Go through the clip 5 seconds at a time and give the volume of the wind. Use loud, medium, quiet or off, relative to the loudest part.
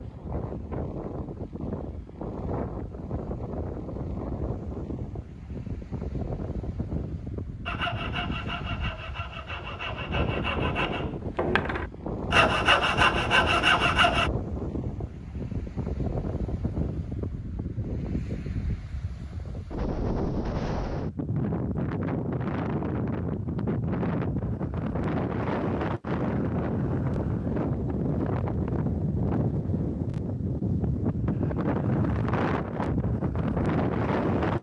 medium, medium, medium, medium, loud, loud, loud.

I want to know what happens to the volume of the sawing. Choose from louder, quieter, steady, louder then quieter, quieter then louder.
louder.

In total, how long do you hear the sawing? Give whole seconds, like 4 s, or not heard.
7 s.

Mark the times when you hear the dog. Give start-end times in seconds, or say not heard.
not heard.